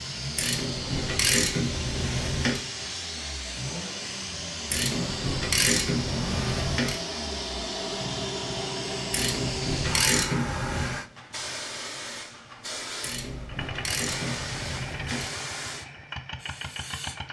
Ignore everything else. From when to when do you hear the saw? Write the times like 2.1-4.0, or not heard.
not heard.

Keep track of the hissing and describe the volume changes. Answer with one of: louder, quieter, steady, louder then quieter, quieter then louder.
steady.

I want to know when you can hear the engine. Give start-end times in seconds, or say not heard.
0.0-11.1, 13.3-17.2.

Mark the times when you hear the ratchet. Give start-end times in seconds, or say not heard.
0.3-2.6, 4.7-7.0, 9.1-10.9, 13.0-15.3.